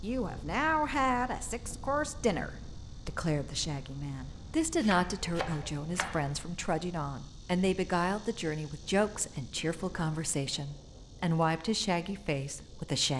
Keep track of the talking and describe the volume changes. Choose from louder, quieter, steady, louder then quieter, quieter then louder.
steady.